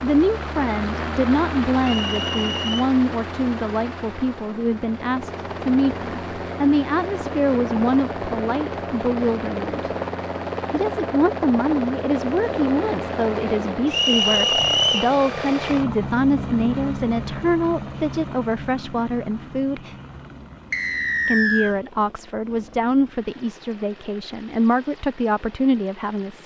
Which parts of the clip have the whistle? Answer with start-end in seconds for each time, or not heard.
1.8-2.9, 13.9-15.1, 20.7-21.8.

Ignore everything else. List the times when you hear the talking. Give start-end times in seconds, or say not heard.
0.0-9.9, 10.7-19.9, 21.2-26.4.